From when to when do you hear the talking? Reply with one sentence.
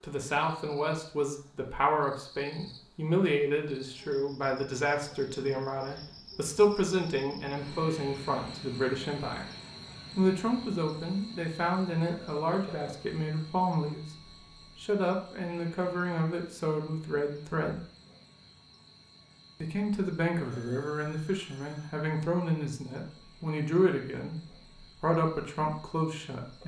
You can hear the talking from 0.0 to 9.5 s, from 10.1 to 17.8 s, from 19.6 to 24.4 s and from 25.0 to 26.6 s.